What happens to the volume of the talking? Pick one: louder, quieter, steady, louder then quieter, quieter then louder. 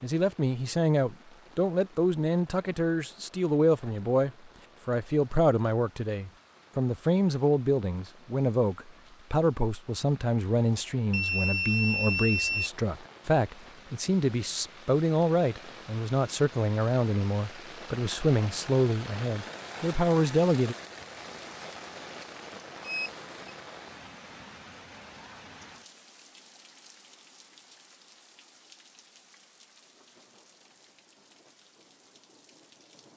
steady.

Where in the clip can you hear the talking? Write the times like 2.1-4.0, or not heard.
0.0-20.8.